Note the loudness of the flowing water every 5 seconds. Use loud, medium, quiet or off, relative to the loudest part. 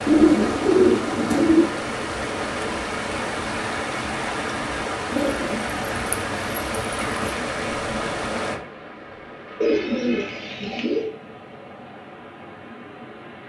loud, loud, quiet.